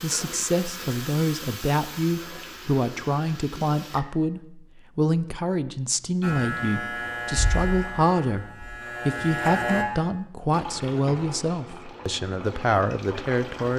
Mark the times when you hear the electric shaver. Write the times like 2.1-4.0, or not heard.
6.2-9.8.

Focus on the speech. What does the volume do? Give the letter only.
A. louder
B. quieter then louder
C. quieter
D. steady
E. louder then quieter
D.